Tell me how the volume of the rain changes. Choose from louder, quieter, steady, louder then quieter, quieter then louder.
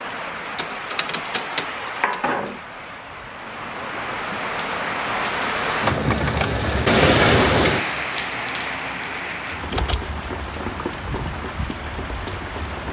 louder then quieter.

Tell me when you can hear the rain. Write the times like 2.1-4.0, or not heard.
0.0-12.8.